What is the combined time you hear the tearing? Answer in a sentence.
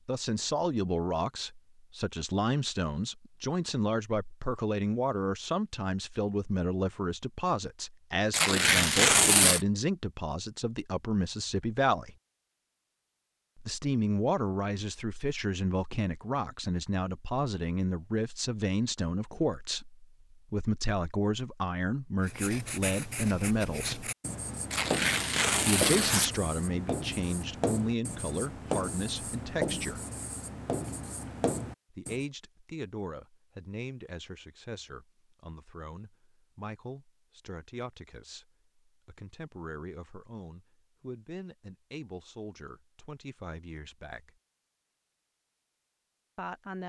The tearing can be heard for 3 seconds in total.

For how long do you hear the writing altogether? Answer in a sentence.
The writing can be heard for 10 seconds in total.